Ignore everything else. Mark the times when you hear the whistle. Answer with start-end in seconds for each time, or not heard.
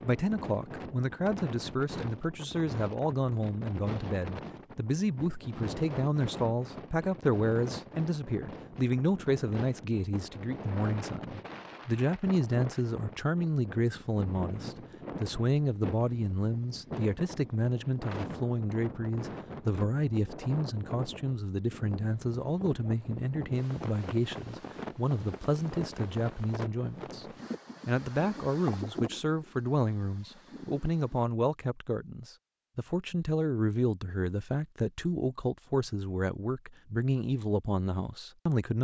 not heard.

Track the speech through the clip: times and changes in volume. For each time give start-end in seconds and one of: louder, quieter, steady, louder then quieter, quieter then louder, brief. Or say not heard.
0.0-27.2 steady
27.9-38.7 steady.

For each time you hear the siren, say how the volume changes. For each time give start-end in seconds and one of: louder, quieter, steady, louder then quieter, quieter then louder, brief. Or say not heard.
not heard.